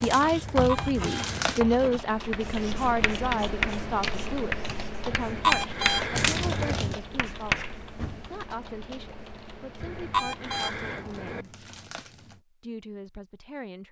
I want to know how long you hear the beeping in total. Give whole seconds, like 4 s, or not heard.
5 s.